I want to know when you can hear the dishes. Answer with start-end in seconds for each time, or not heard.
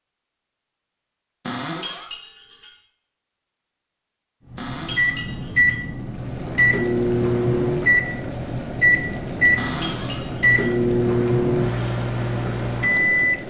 1.8-2.7, 4.8-5.8, 9.8-10.7.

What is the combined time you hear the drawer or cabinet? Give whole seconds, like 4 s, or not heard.
2 s.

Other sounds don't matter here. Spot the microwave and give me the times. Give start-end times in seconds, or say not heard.
4.5-13.4.